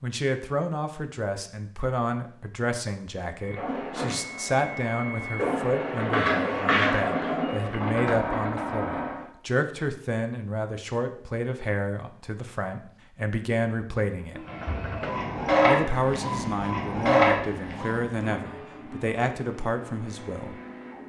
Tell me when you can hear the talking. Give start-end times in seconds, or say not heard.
0.0-14.4, 15.7-20.6.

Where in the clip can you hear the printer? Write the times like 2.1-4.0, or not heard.
3.4-9.2, 14.3-21.0.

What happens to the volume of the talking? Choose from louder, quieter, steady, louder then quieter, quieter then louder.
steady.